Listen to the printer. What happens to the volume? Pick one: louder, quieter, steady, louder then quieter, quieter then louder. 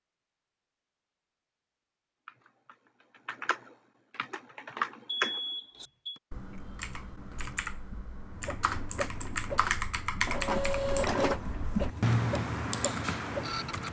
louder then quieter.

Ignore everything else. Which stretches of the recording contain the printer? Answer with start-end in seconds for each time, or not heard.
8.2-13.8.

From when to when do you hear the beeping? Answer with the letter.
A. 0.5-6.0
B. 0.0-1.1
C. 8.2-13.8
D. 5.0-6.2
D.